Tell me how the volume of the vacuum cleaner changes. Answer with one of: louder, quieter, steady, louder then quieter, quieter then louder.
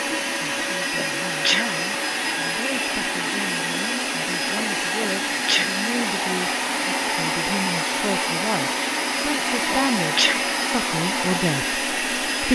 steady.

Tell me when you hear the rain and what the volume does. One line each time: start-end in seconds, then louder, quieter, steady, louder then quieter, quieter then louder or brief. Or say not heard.
not heard.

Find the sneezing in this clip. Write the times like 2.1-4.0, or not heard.
0.9-1.6, 5.0-5.7, 9.7-10.4.